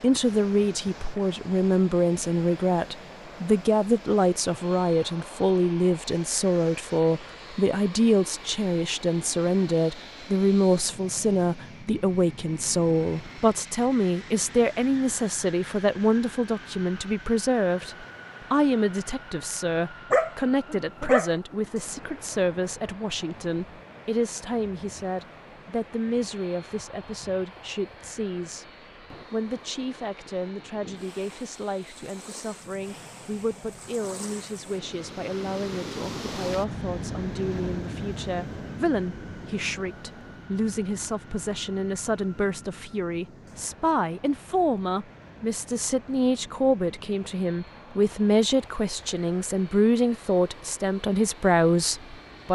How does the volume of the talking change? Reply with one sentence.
The volume of the talking goes down, then up.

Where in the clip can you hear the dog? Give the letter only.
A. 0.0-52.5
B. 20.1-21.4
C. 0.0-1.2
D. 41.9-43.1
B.